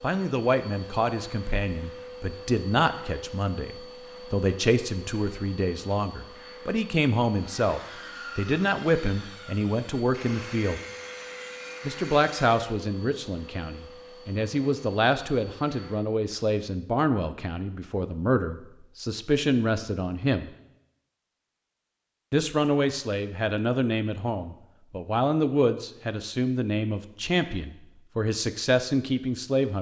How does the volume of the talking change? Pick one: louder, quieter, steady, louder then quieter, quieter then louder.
steady.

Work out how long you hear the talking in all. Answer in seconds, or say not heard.
27 s.